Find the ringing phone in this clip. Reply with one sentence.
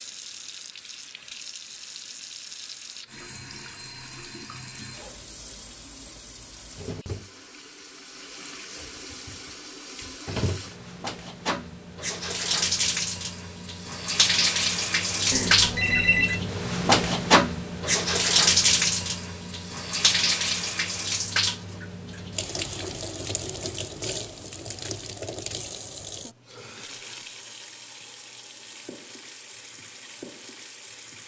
The ringing phone can be heard from 15.3 to 16.4 s.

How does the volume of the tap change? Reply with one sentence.
The loudness of the tap goes up, then down.